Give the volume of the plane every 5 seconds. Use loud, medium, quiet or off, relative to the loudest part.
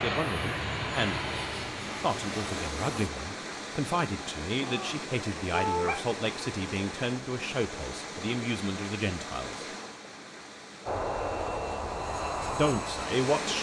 loud, off, loud.